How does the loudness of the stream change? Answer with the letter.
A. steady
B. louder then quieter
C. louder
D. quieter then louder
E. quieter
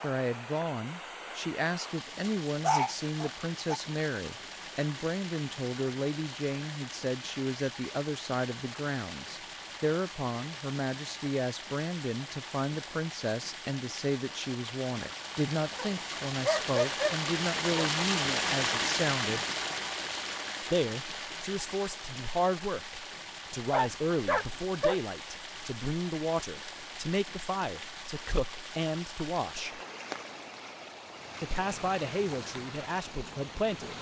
B.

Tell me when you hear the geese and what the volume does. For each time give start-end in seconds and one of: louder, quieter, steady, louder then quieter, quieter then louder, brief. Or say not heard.
not heard.